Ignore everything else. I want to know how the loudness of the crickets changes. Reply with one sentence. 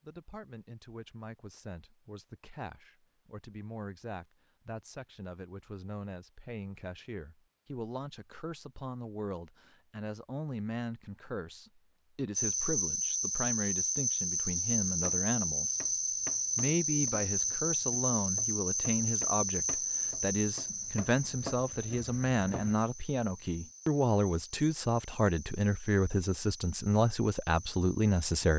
The loudness of the crickets goes down.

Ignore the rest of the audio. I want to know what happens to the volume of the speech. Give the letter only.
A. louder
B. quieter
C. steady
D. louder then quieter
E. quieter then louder
A.